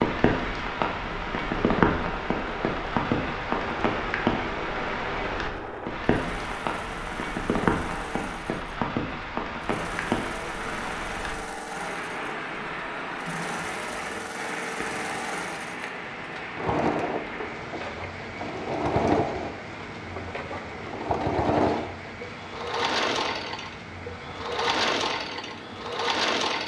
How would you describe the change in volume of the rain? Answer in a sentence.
The loudness of the rain goes down.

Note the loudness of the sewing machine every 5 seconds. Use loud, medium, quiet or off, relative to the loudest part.
medium, medium, medium, loud, loud, loud.